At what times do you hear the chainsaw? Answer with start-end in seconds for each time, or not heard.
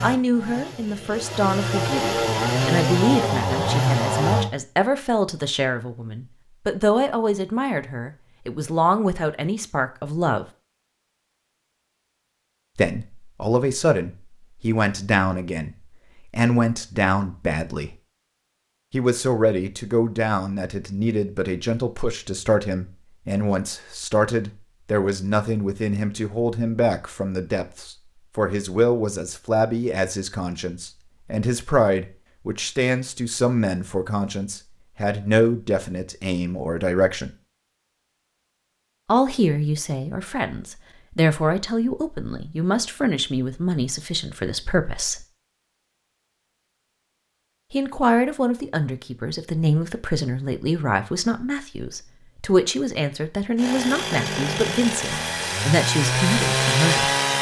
0.0-4.5, 53.5-57.3.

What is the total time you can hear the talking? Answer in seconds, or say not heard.
50 s.